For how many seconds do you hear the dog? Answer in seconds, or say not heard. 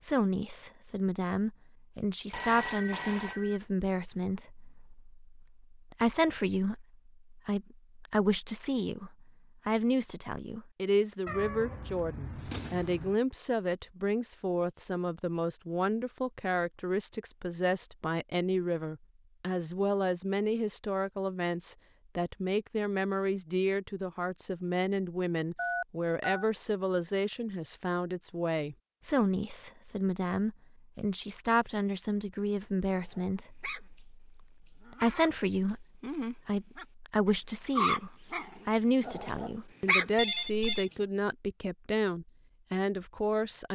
5 s.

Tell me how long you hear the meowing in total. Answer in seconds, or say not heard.
2 s.